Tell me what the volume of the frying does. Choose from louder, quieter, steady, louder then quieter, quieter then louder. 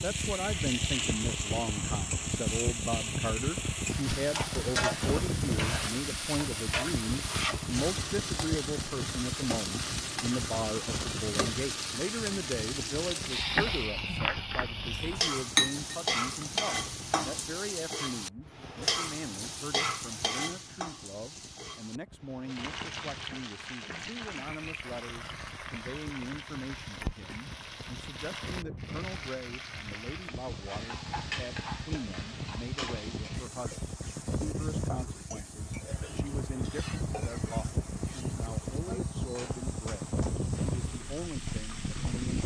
quieter.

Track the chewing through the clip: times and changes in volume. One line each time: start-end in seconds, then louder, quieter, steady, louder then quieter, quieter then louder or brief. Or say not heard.
not heard.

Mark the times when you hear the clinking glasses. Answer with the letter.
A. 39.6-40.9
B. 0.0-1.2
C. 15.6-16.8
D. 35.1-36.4
C.